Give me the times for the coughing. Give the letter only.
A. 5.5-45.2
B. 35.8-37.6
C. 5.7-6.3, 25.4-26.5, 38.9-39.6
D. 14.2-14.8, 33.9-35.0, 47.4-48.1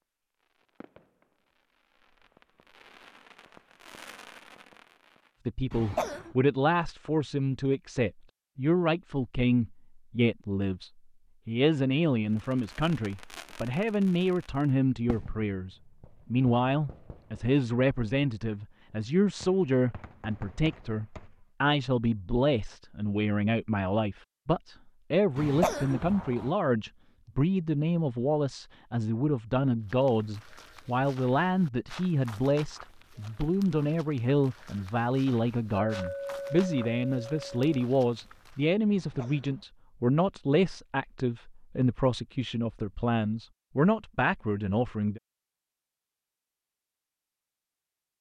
C.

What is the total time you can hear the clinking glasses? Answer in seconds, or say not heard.
2 s.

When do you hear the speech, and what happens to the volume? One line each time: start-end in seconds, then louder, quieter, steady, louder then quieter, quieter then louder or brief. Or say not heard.
5.5-45.2 steady.